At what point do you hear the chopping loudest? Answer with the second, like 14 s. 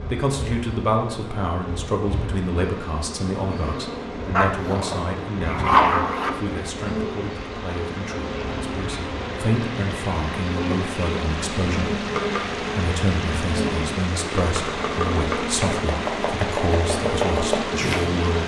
17 s.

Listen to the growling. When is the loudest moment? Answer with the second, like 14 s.
6 s.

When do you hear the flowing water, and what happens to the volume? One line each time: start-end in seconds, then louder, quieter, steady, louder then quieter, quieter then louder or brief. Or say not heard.
0.0-18.4 louder.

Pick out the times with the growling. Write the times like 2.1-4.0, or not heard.
4.3-6.3.